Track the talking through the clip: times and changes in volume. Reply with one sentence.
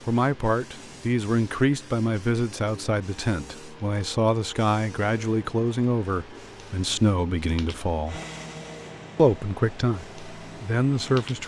The talking can be heard from 0.1 to 8.2 s, at a steady volume; and briefly from 9.2 to 11.4 s.